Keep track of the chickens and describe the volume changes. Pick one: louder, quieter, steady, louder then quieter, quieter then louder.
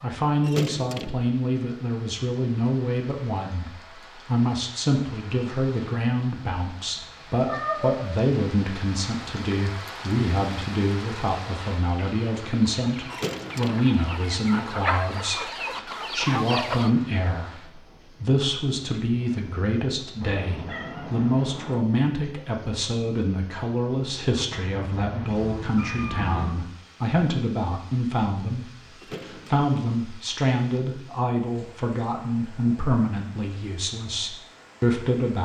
louder.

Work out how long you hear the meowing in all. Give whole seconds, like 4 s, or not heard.
4 s.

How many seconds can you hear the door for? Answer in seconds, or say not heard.
2 s.